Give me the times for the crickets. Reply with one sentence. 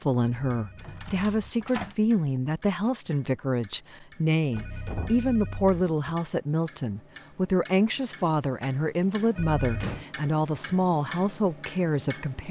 The crickets can't be heard in this clip.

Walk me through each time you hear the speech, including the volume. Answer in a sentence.
You can hear the speech from 0.0 to 12.4 s, at a steady volume.